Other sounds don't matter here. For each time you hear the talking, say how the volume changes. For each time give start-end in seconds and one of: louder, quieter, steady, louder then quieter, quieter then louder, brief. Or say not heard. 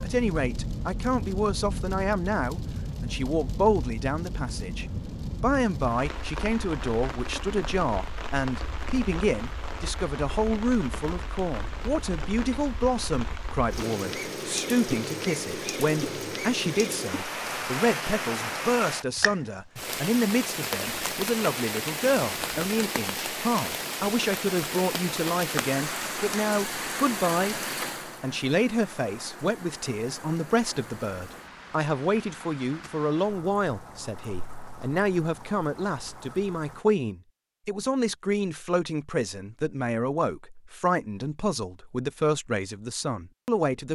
0.0-43.9 steady.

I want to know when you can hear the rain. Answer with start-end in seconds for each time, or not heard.
0.0-36.9.